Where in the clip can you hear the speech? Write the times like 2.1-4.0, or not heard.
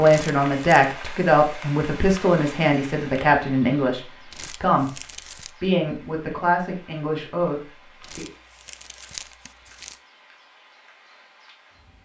0.0-8.2.